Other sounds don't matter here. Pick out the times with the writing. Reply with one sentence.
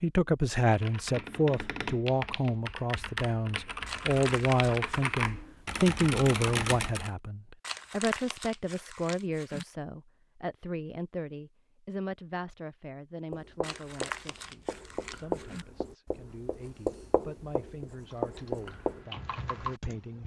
The writing can be heard from 13.3 to 19.1 s.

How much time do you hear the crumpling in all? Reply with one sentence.
The crumpling can be heard for 5 seconds in total.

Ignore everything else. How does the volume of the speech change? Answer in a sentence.
The volume of the speech goes down.